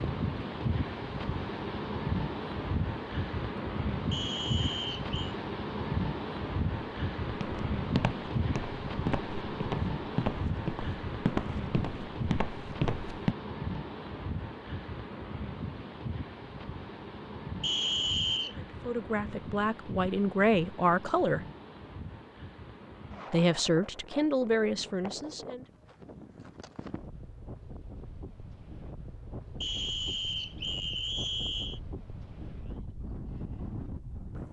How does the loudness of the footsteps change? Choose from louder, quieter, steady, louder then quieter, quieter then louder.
steady.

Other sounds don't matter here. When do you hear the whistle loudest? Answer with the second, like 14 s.
18 s.